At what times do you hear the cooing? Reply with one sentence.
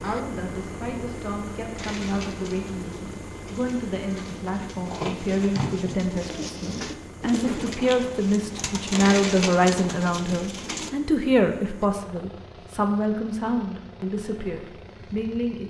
You can hear the cooing from 1.8 to 10.9 s.